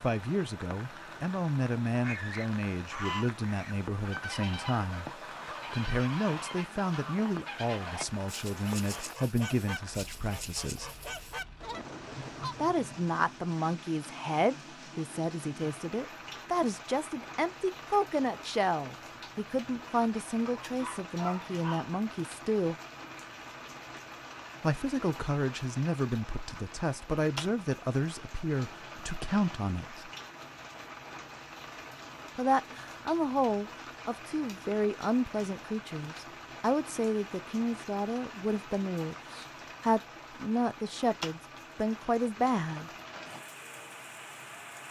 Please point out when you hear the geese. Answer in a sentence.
You can hear the geese from 2.0 to 12.8 s.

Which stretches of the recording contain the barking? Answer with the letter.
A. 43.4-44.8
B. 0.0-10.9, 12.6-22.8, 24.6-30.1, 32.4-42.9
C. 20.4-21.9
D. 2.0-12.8
C.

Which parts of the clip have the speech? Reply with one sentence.
The speech can be heard from 0.0 to 10.9 s, from 12.6 to 22.8 s, from 24.6 to 30.1 s and from 32.4 to 42.9 s.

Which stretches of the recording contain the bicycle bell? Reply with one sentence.
The bicycle bell can't be heard in this clip.